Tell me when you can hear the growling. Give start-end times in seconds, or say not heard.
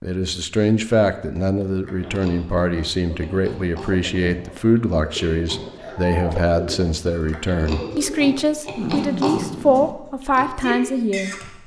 8.8-9.9.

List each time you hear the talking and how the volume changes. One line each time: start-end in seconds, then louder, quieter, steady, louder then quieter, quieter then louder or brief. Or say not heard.
0.0-11.5 steady.